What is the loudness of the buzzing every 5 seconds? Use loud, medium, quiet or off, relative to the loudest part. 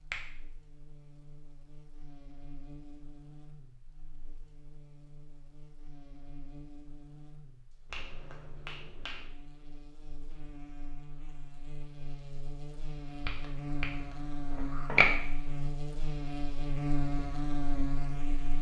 quiet, quiet, medium, loud.